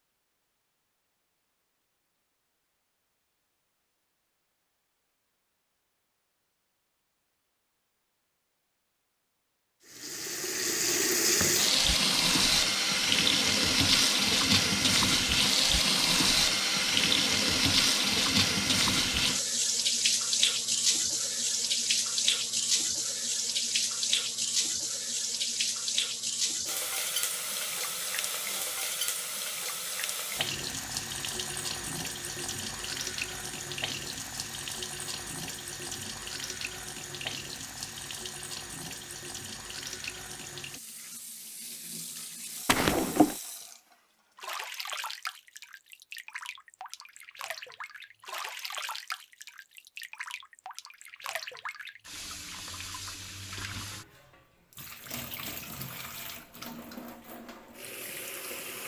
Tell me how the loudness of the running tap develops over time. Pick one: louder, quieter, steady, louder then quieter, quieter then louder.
quieter.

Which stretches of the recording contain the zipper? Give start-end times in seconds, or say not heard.
42.6-43.4.